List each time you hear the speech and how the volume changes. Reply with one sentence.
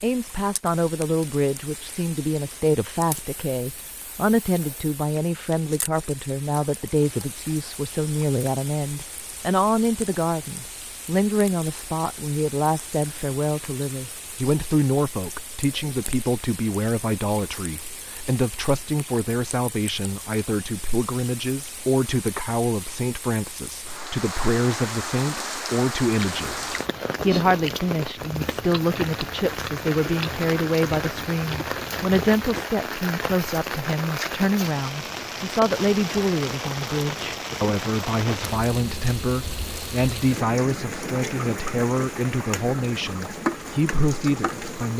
The speech can be heard from 0.0 to 44.9 s, at a steady volume.